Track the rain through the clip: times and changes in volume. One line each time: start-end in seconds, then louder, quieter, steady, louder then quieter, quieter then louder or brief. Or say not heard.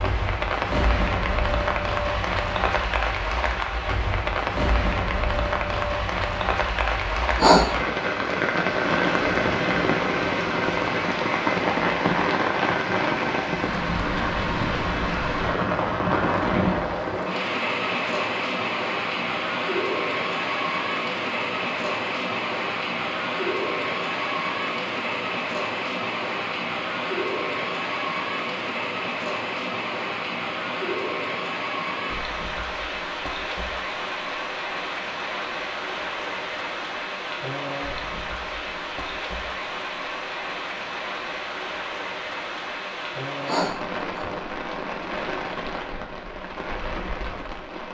0.0-47.8 quieter.